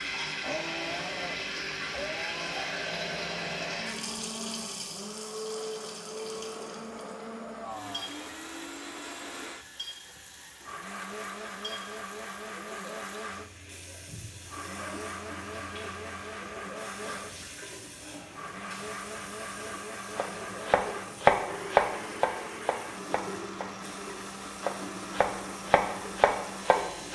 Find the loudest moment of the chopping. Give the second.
21 s.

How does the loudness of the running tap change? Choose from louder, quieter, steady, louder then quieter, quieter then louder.
quieter.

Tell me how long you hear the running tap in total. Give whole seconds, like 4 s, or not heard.
27 s.